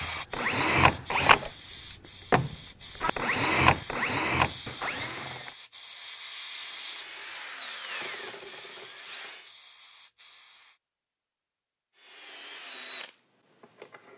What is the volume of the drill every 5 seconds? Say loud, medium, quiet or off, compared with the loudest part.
loud, quiet, quiet.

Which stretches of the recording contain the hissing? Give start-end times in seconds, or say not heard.
0.0-10.8.